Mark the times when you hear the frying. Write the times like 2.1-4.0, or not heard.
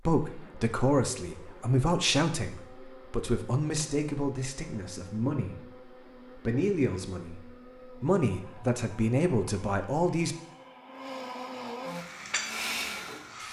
11.9-13.4.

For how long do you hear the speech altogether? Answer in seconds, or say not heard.
10 s.